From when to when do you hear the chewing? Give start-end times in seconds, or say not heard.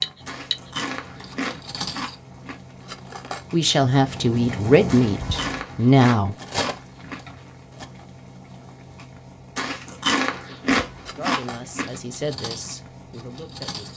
0.2-2.5, 4.8-7.3, 9.6-11.9.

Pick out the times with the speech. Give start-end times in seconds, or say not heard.
3.5-6.3, 11.2-13.9.